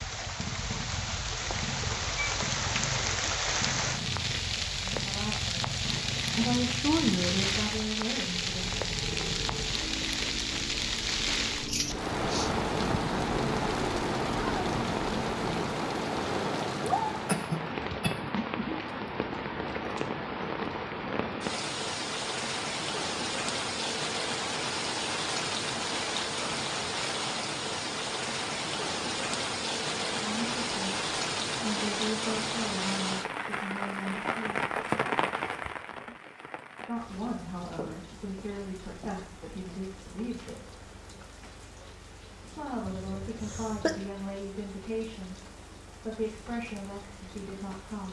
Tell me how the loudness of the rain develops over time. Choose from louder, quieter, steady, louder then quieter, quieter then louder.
quieter.